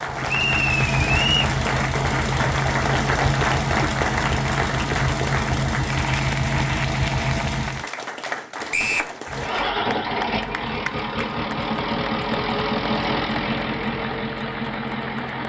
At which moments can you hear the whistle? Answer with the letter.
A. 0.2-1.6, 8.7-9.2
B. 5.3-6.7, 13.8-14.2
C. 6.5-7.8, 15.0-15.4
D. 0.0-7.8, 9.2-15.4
A.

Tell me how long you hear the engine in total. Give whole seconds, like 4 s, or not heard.
14 s.